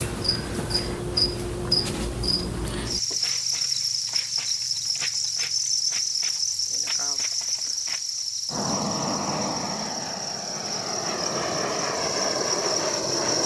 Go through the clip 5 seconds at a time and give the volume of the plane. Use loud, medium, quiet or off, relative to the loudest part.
off, loud, loud.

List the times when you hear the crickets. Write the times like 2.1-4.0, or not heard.
0.0-13.4.